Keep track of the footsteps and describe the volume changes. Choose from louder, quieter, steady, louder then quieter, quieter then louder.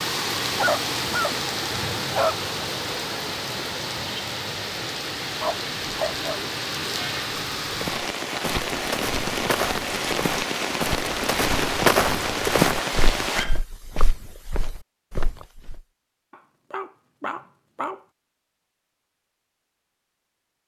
louder then quieter.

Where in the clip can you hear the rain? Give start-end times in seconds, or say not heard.
0.0-13.4.